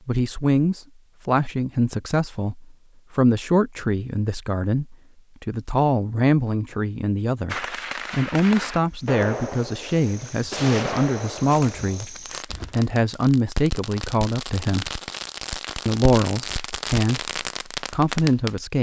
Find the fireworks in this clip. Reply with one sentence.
The fireworks can be heard from 7.5 to 18.6 s.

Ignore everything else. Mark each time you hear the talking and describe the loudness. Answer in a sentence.
The talking can be heard from 0.1 to 14.9 s, at a steady volume; and briefly from 15.8 to 18.7 s.